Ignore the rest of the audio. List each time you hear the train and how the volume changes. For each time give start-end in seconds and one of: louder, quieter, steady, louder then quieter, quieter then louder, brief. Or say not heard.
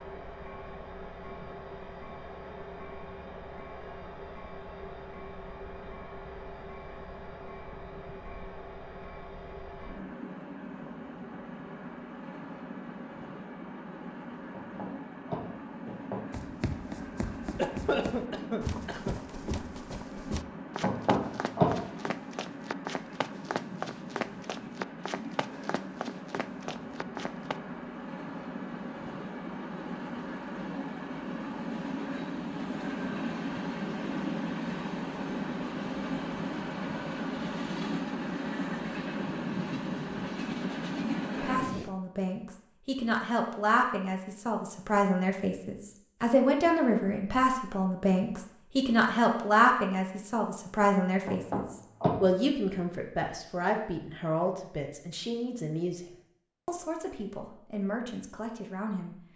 0.0-41.9 louder.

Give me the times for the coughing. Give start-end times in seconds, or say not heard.
17.6-19.2.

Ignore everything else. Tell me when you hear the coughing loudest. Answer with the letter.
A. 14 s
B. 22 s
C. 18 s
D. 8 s
C.